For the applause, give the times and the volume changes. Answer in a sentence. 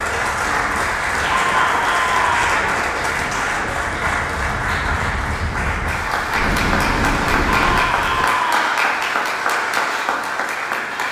You can hear the applause from 0.0 to 11.0 s, at a steady volume.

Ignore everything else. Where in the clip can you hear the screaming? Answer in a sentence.
The screaming can be heard from 1.3 to 2.6 s and from 7.5 to 8.7 s.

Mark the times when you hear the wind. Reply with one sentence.
The wind can be heard from 0.0 to 8.2 s.